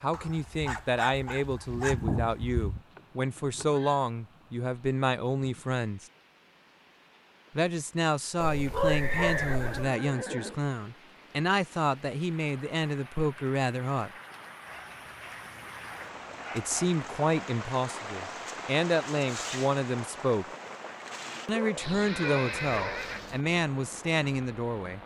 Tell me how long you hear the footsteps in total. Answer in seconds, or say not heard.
not heard.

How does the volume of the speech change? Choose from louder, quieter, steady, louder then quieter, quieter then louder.
steady.